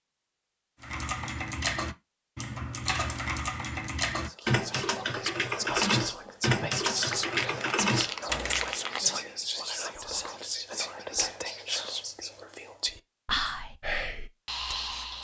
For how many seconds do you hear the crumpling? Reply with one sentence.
The crumpling can be heard for 2 seconds in total.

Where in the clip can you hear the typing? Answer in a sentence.
The typing can be heard from 0.8 to 8.8 s.